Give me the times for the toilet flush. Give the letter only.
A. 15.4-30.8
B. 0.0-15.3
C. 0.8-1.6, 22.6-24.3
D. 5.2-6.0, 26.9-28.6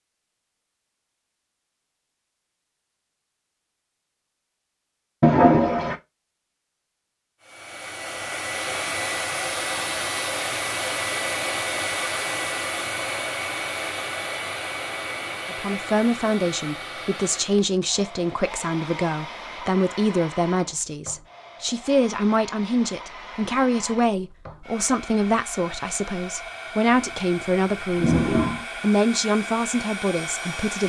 D.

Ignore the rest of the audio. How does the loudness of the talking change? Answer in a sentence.
The volume of the talking stays about the same.